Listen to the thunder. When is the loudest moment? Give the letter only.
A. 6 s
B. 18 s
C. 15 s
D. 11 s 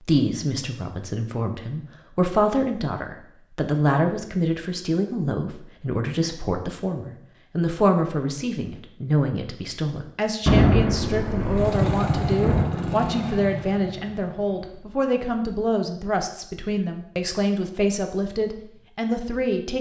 D.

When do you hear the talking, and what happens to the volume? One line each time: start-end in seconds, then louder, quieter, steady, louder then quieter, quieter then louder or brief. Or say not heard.
0.0-19.7 steady.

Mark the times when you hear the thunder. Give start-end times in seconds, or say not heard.
10.4-12.9.